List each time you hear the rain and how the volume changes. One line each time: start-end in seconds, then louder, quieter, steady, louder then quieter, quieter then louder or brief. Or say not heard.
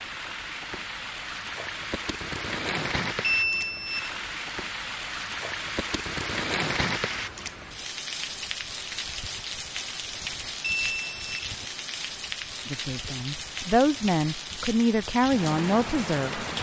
0.0-16.5 steady.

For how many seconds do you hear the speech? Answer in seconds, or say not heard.
4 s.